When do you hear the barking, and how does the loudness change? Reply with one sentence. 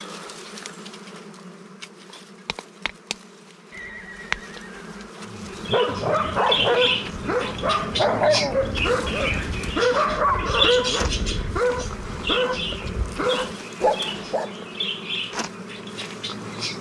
The barking can be heard from 5.2 to 14.5 s, at a steady volume.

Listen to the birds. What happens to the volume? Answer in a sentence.
The loudness of the birds goes down.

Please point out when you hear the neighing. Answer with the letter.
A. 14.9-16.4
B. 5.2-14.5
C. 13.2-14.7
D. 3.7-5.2
D.